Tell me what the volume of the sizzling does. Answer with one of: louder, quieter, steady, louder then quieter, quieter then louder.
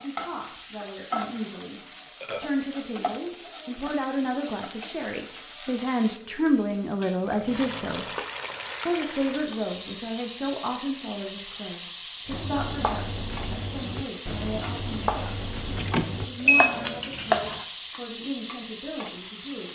steady.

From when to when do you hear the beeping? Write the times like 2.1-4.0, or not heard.
15.8-16.7.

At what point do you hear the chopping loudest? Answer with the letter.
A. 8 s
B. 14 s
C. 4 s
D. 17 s
D.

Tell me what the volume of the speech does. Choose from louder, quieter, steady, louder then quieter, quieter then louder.
louder then quieter.